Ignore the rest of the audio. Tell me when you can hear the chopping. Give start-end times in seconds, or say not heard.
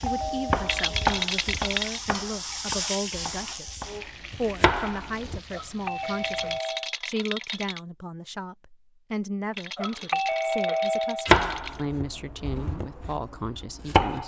0.0-5.4, 11.2-14.2.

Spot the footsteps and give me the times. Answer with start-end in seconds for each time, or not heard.
not heard.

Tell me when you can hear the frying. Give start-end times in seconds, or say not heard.
0.0-6.6.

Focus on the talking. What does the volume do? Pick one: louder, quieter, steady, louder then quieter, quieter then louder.
steady.